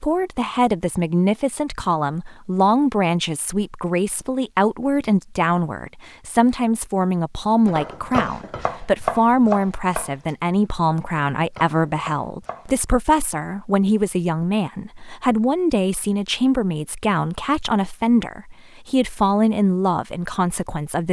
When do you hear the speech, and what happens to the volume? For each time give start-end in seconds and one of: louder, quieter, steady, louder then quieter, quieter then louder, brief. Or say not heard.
0.0-21.0 steady.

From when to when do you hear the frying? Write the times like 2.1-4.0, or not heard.
not heard.